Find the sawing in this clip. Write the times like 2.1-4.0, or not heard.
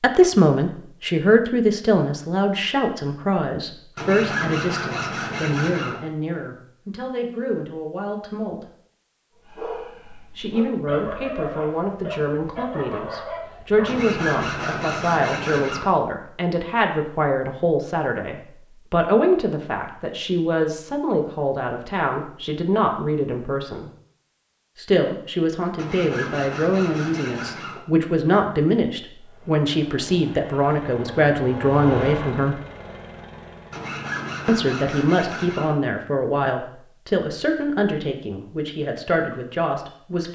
4.0-6.0, 13.8-15.9, 25.8-27.8, 33.7-35.8.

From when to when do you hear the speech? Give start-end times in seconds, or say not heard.
0.0-8.7, 10.3-23.9, 24.8-32.6, 34.5-40.2.